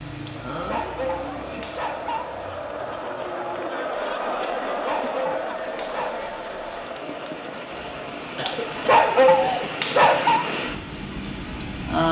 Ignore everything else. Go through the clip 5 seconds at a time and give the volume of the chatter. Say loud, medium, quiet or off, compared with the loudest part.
loud, loud, off.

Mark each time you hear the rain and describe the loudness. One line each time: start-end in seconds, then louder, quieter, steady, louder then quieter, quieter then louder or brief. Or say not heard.
0.0-12.0 quieter then louder.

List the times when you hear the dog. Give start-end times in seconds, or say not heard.
0.2-2.3, 4.4-6.2, 8.4-10.4.